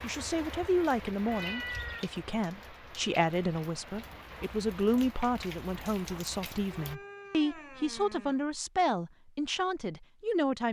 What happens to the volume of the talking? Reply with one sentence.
The volume of the talking stays about the same.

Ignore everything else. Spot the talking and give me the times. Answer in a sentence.
The talking can be heard from 0.0 to 10.6 s.